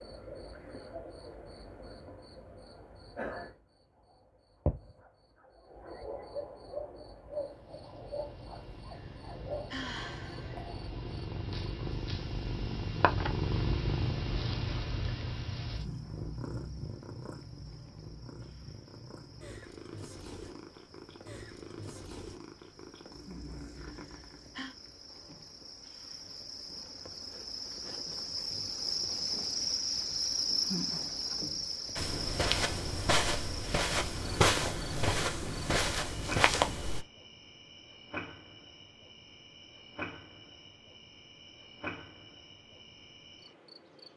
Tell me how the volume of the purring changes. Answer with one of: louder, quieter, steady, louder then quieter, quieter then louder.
louder then quieter.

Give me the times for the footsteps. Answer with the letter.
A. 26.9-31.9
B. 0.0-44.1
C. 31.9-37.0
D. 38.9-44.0
C.